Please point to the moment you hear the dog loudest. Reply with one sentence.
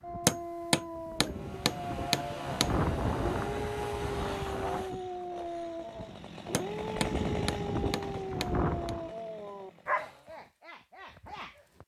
The volume of the dog peaks at 10 seconds.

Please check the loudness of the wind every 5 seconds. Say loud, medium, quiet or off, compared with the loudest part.
loud, loud, off.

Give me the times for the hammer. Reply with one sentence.
The hammer can be heard from 0.2 to 2.7 s and from 6.5 to 8.9 s.